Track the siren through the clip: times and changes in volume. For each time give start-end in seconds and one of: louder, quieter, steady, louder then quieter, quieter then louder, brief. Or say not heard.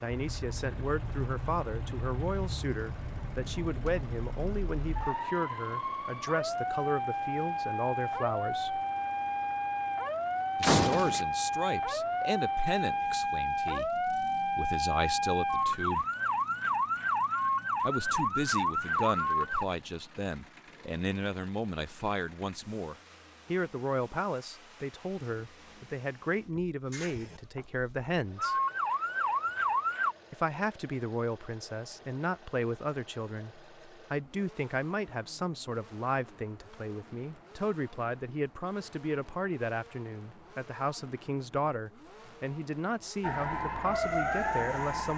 0.1-19.6 louder
28.4-30.1 brief
43.2-45.1 brief.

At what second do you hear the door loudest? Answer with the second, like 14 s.
11 s.